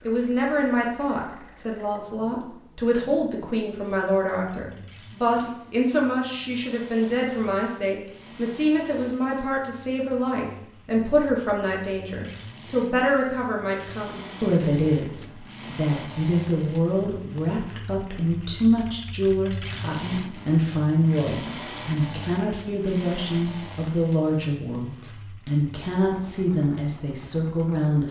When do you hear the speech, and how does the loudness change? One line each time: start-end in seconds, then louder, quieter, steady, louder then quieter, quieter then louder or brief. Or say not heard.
0.1-28.0 steady.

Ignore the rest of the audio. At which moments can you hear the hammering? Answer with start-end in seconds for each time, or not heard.
not heard.